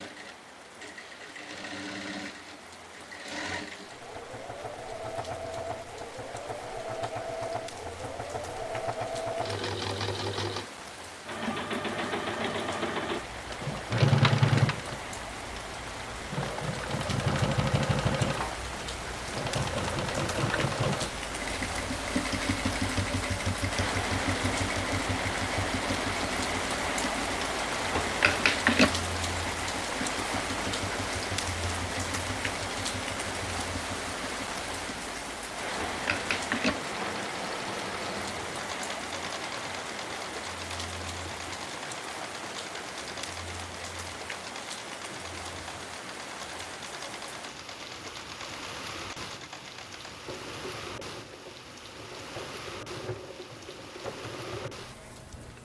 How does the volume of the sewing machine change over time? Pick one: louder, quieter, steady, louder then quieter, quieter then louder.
louder then quieter.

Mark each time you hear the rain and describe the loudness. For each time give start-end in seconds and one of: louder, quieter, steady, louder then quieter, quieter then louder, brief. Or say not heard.
0.0-55.6 louder then quieter.